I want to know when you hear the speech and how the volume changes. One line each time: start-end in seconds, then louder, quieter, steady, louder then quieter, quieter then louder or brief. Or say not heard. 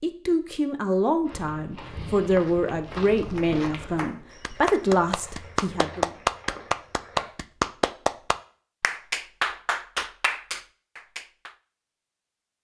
0.0-6.1 steady.